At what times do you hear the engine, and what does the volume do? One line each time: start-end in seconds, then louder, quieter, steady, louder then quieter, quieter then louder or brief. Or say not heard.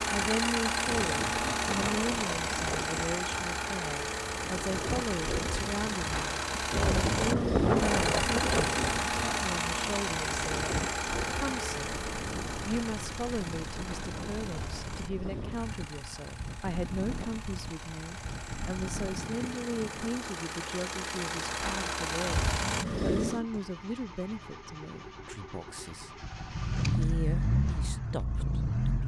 0.0-29.0 quieter then louder.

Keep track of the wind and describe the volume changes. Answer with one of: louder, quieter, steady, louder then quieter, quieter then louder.
louder then quieter.